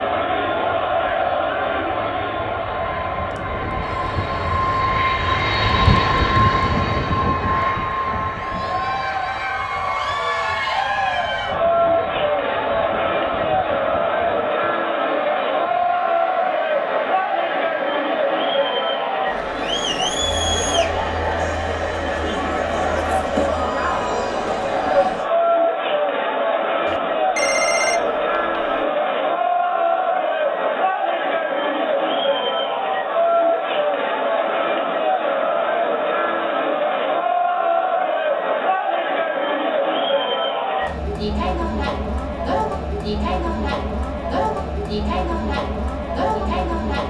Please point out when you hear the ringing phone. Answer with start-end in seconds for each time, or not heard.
3.8-4.7, 26.9-28.9.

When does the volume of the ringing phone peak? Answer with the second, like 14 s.
28 s.